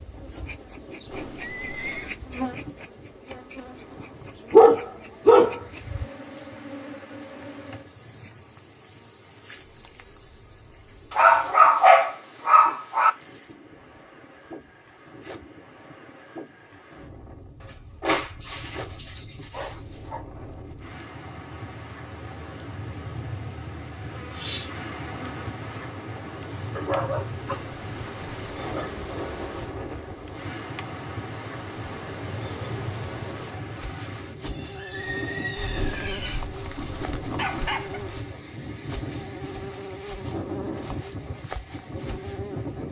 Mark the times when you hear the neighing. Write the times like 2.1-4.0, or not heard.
1.1-2.1, 34.5-36.5.